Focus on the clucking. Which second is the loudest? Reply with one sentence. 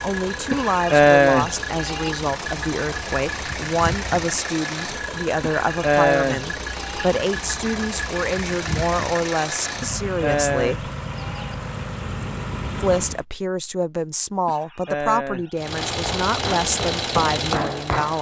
The volume of the clucking peaks at 1 second.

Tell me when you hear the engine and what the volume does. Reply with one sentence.
You can hear the engine from 0.0 to 13.2 s, at a steady volume; and briefly from 15.6 to 18.1 s.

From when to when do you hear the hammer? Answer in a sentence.
The hammer can be heard from 15.9 to 18.1 s.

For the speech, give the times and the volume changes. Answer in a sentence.
You can hear the speech from 0.0 to 10.9 s, at a steady volume; and from 12.8 to 18.1 s, at a steady volume.